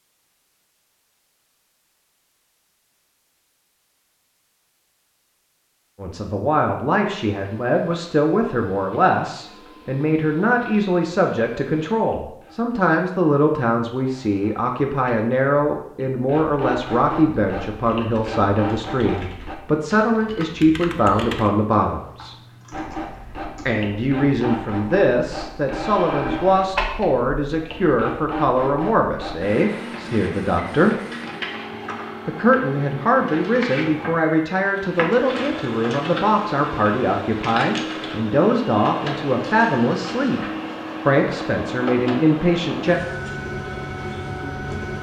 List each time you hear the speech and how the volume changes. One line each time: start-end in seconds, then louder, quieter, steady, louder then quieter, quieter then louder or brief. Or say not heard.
6.0-22.4 steady
23.6-30.9 steady
32.2-40.4 steady
41.0-43.0 brief.